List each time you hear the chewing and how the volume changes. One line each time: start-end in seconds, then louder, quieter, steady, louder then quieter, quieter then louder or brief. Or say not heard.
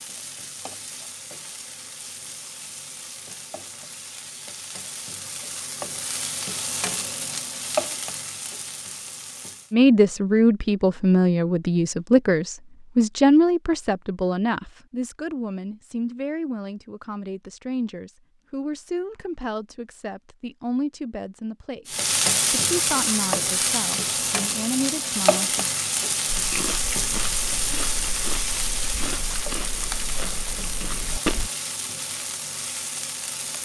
26.3-31.5 steady.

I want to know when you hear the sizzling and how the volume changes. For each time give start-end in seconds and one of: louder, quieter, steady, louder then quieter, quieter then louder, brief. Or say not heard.
0.0-9.8 louder
21.9-33.6 quieter.